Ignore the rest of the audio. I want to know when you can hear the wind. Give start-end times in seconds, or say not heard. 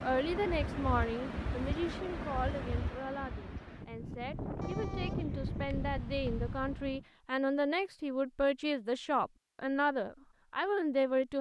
0.0-7.0.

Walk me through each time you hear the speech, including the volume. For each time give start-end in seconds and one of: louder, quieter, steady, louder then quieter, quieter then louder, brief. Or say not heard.
0.0-11.3 quieter then louder.